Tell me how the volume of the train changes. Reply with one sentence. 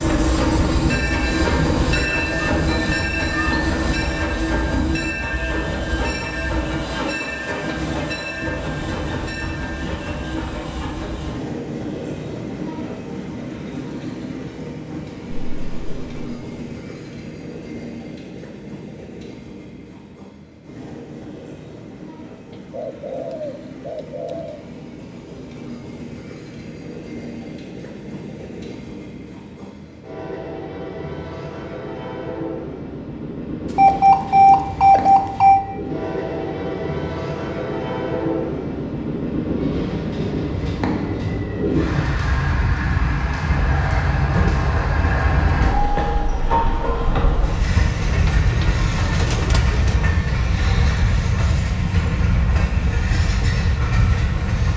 The loudness of the train goes down, then up.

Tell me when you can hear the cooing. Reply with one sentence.
You can hear the cooing from 22.5 to 24.6 s and from 48.0 to 50.0 s.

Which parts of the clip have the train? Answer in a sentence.
The train can be heard from 0.0 to 54.7 s.